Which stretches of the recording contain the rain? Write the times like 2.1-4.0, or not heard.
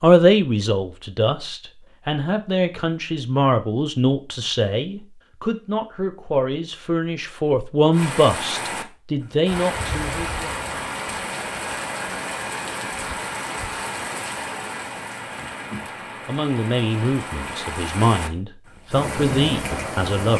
7.9-20.3.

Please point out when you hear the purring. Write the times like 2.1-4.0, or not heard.
not heard.